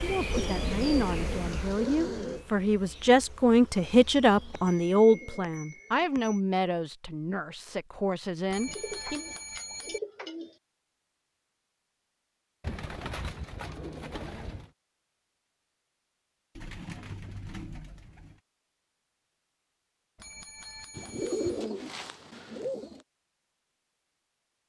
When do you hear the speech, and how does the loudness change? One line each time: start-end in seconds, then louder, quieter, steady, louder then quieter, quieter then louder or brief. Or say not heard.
0.0-9.2 louder then quieter.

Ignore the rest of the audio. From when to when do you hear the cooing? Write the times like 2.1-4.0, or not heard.
0.3-2.5, 4.2-6.2, 8.7-10.6, 12.6-14.7, 16.6-18.4, 20.9-23.1.